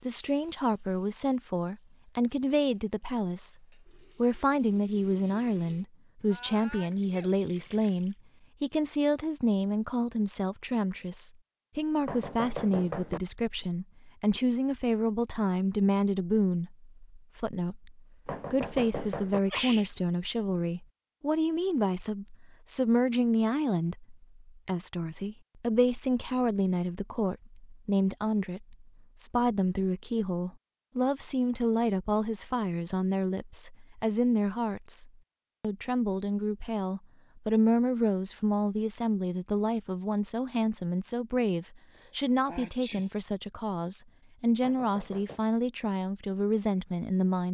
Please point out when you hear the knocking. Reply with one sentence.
You can hear the knocking from 12.1 to 13.2 s, from 18.2 to 19.4 s and from 44.6 to 45.4 s.